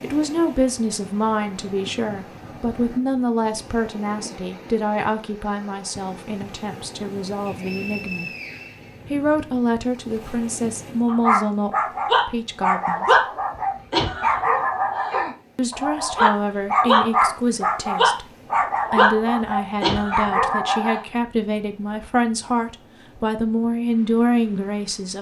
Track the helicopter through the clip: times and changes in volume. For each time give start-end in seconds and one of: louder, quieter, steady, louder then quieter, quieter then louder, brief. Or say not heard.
not heard.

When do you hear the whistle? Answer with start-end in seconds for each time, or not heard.
7.5-9.4.